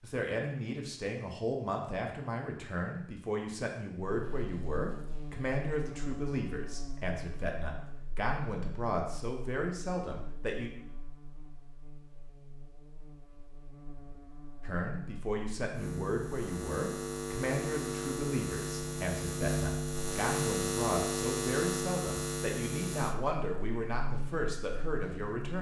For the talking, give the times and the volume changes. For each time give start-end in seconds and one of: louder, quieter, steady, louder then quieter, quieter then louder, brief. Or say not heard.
0.0-10.7 steady
14.6-25.5 steady.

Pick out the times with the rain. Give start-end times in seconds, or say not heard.
not heard.